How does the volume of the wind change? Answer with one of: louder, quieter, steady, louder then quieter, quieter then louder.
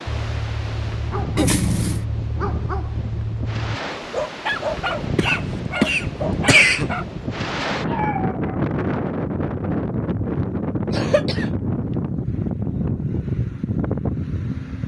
louder.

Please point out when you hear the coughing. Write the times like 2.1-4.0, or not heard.
1.4-2.0, 5.2-6.9, 10.9-11.4.